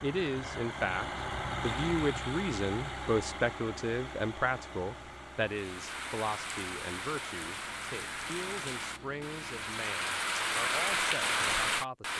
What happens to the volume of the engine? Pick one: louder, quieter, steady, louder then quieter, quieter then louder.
quieter.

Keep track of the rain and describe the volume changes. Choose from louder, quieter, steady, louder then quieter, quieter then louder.
louder.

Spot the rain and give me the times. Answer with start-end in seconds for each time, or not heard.
5.5-12.1.